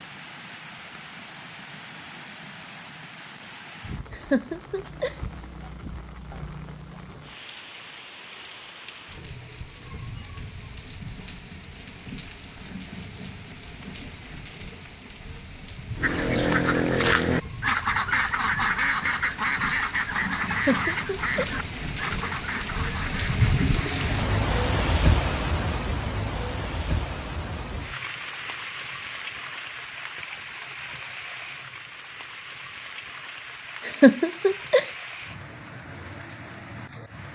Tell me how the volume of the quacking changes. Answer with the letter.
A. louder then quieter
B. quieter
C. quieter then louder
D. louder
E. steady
B.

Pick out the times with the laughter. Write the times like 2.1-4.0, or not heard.
4.1-5.2, 20.4-21.5, 33.9-34.9.